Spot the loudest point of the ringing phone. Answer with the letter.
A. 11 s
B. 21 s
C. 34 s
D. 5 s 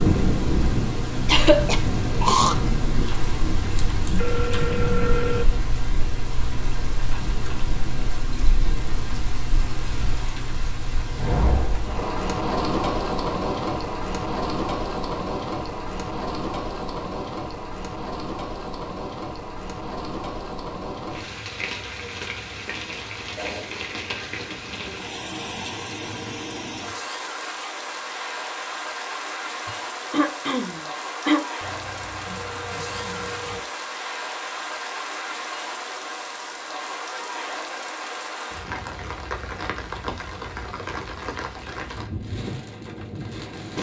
D.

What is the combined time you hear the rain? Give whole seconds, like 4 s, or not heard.
44 s.